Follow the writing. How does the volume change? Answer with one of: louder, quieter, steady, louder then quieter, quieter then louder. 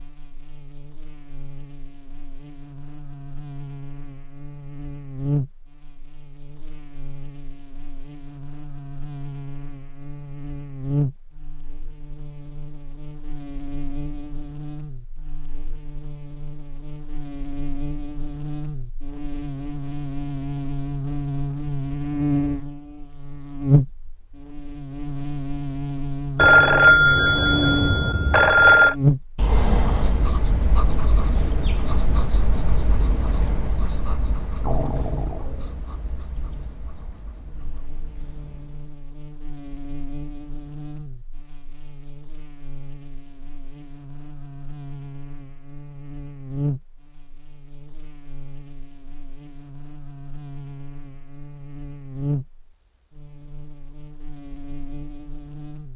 quieter.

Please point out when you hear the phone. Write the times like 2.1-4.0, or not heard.
26.4-28.9.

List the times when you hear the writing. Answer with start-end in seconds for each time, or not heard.
29.4-39.0.